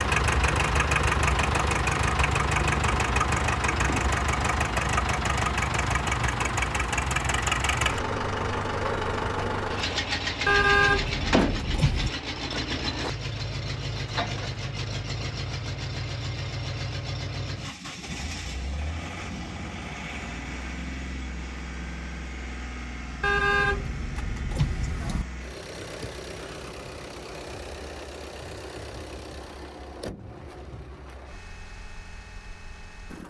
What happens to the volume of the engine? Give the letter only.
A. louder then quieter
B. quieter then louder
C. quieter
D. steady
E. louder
C.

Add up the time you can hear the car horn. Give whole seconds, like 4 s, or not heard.
4 s.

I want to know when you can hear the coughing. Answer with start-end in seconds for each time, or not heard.
not heard.